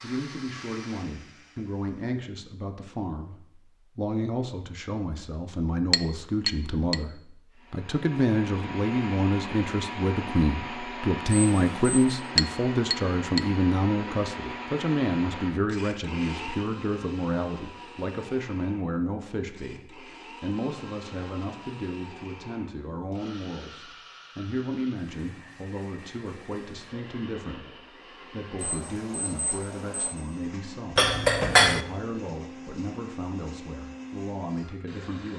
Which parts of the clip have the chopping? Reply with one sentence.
You can't hear the chopping here.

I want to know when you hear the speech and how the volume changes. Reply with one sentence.
You can hear the speech from 0.0 to 35.3 s, getting louder then quieter.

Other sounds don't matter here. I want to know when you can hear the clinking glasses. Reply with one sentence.
The clinking glasses can be heard from 5.9 to 7.0 s, from 12.3 to 13.4 s and from 30.9 to 31.9 s.